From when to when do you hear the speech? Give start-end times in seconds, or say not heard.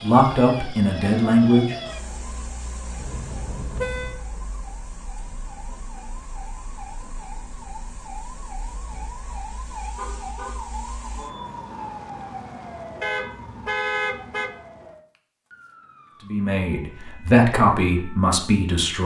0.0-1.8, 16.2-19.0.